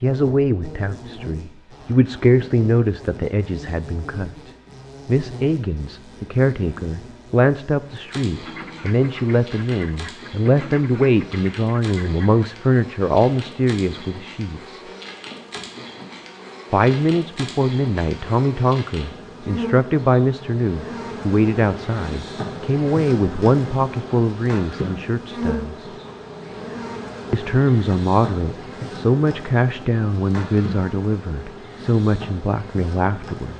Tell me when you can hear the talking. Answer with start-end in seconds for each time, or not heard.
0.0-14.8, 16.7-25.9, 27.3-33.5.